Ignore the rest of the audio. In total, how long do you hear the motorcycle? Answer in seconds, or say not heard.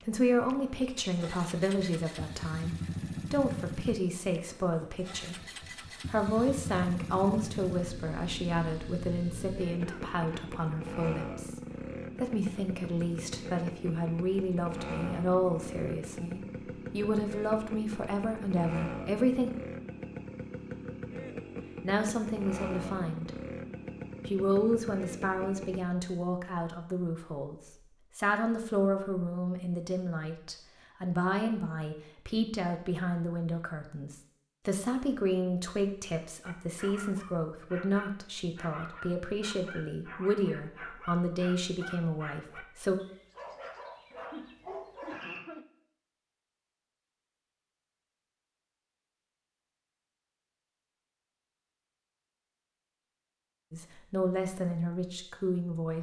26 s.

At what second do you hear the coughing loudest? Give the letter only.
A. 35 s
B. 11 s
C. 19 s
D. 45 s
D.